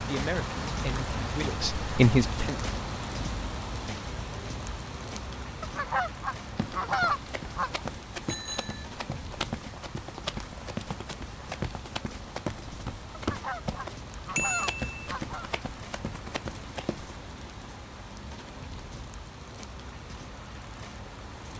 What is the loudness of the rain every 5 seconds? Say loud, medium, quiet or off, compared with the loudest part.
loud, medium, medium, medium, medium.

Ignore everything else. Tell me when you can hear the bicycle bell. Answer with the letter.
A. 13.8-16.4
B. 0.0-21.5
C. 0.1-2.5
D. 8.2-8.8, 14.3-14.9
D.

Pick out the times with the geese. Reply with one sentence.
The geese can be heard from 5.6 to 7.8 s and from 13.1 to 15.5 s.